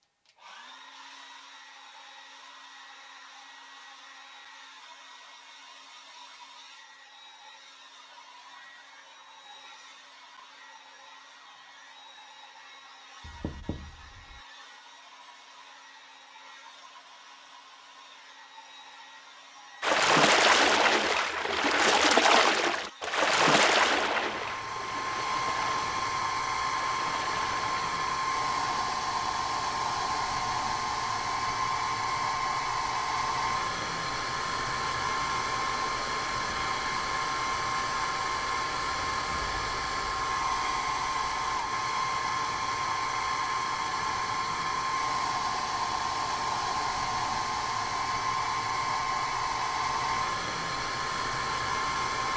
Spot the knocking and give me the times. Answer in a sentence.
The knocking can be heard from 13.2 to 14.4 s.